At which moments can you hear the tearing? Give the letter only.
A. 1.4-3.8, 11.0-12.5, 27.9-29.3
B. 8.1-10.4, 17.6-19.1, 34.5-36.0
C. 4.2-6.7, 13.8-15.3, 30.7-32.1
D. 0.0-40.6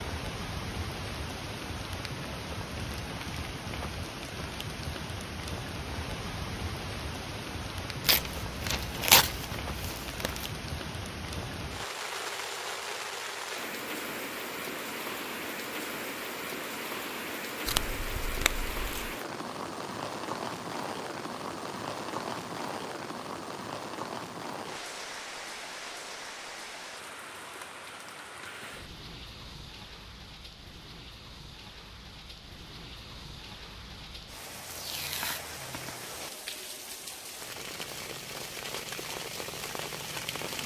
B.